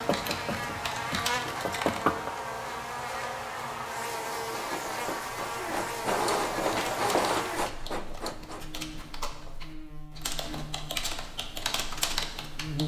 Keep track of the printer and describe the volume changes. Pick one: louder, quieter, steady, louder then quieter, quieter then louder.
louder then quieter.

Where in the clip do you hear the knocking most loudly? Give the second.
2 s.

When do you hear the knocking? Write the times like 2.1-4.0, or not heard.
0.1-2.4, 7.9-9.5.